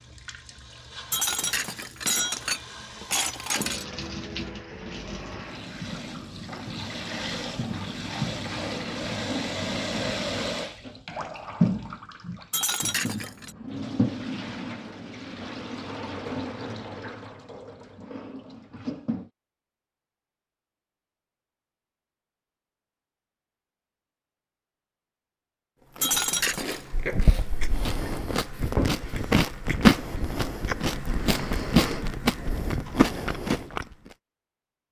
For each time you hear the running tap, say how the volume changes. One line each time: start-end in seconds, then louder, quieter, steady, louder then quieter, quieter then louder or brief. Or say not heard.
0.0-19.3 louder then quieter.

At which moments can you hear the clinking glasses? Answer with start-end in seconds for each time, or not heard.
1.1-3.9, 12.5-13.6, 26.0-26.8.